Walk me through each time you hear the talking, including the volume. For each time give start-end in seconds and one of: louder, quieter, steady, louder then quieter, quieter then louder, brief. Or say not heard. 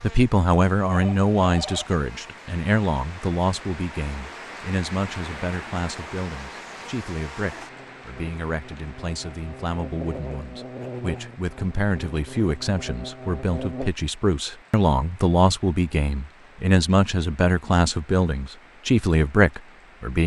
0.0-20.2 quieter then louder.